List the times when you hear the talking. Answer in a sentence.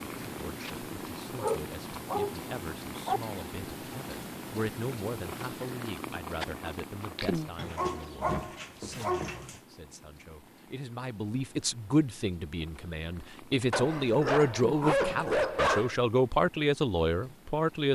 The talking can be heard from 0.0 to 17.9 s.